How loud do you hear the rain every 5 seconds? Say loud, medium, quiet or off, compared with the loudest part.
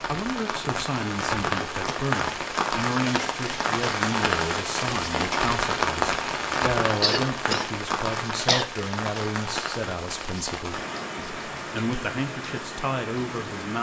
loud, loud, medium.